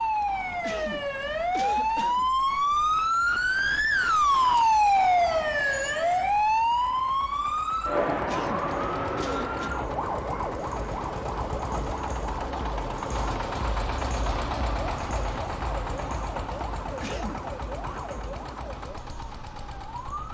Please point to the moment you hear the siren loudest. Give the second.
5 s.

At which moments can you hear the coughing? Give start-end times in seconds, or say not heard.
0.6-2.3, 8.2-9.7, 17.0-17.4.